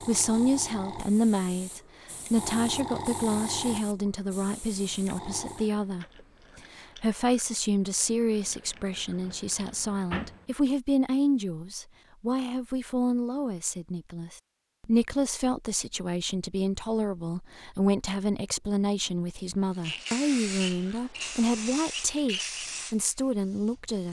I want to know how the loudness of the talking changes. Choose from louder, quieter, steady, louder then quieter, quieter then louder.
steady.